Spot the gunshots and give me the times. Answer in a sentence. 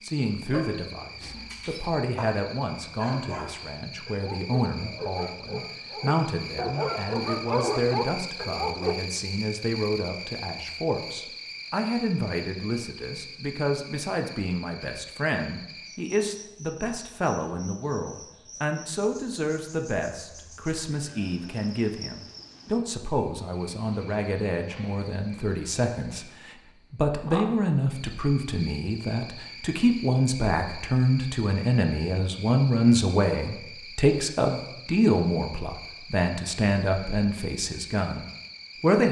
The gunshots can't be heard in this clip.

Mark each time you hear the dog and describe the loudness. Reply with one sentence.
You can hear the dog from 0.0 to 8.9 s, getting louder.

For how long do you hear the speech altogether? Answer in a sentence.
The speech can be heard for 39 seconds in total.